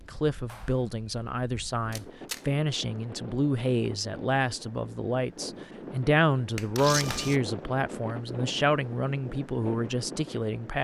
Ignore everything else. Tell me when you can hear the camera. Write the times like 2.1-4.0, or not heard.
1.9-2.4, 6.8-7.4.